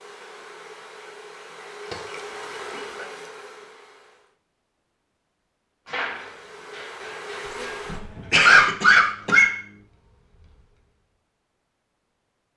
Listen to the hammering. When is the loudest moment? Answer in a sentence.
The loudest moment of the hammering is at 6 seconds.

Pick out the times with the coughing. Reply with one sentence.
The coughing can be heard from 1.9 to 3.0 s and from 7.8 to 9.5 s.